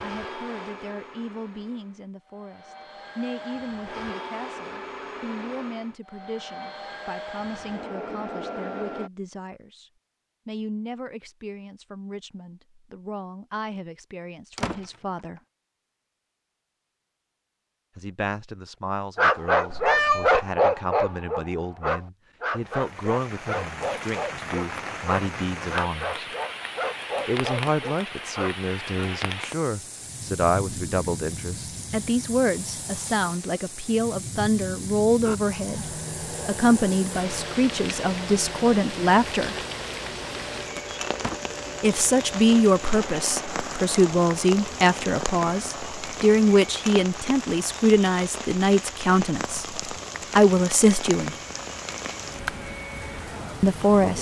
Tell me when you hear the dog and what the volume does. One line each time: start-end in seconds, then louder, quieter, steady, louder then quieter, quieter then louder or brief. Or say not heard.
19.1-29.2 quieter.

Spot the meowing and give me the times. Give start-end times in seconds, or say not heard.
19.7-20.4.